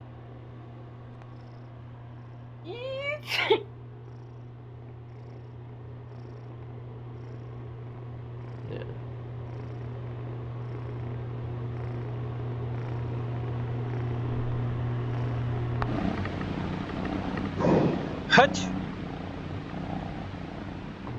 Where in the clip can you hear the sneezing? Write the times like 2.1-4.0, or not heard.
2.6-3.6, 17.6-18.6.